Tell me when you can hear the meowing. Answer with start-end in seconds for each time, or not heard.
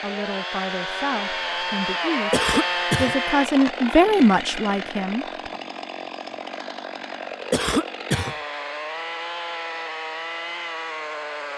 not heard.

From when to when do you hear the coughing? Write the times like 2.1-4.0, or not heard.
2.3-3.1, 7.5-8.3.